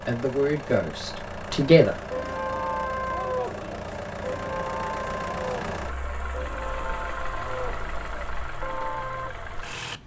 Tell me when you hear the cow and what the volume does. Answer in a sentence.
The cow can be heard from 2.1 to 9.3 s, getting quieter.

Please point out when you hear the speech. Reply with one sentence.
The speech can be heard from 0.1 to 1.9 s.